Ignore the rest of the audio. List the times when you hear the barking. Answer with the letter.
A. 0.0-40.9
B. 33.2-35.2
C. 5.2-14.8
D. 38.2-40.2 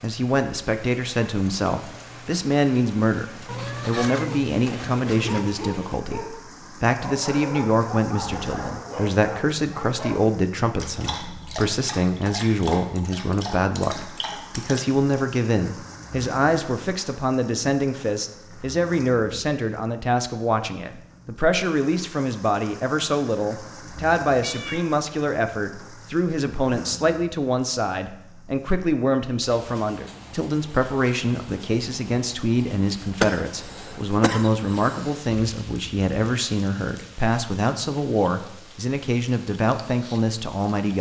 C.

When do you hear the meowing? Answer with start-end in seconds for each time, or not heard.
3.5-5.5, 24.4-24.9.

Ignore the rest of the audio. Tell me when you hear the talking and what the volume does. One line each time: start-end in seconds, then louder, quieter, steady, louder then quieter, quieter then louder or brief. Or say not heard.
0.0-40.9 steady.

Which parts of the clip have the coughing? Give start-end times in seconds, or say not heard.
33.2-35.2.